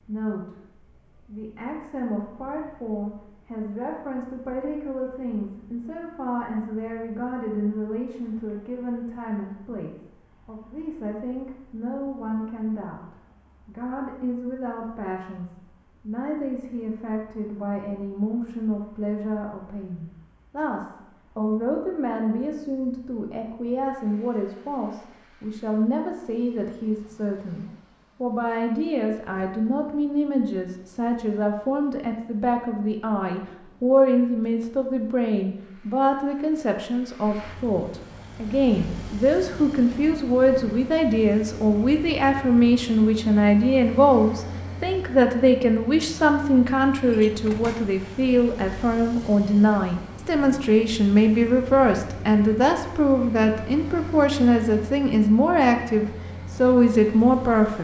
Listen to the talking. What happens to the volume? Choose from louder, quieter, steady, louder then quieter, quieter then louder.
louder.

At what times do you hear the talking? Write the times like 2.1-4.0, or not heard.
0.1-57.8.